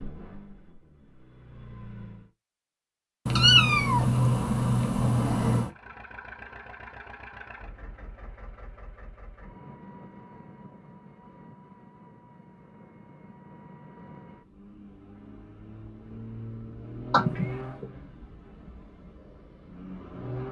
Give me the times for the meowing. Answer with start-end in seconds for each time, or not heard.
3.2-5.7, 17.1-17.9.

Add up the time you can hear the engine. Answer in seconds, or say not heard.
17 s.